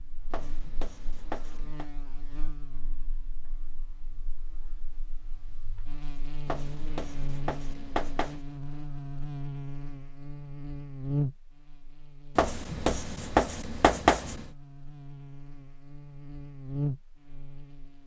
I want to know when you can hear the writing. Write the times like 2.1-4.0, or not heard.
0.3-1.9, 6.5-8.4, 12.3-14.4.